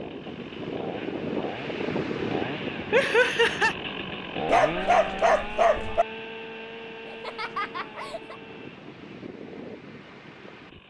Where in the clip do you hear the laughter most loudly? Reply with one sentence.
The volume of the laughter peaks at 3 seconds.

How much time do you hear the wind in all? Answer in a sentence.
You can hear the wind for 11 seconds altogether.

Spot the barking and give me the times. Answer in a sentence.
You can hear the barking from 4.5 to 6.0 s.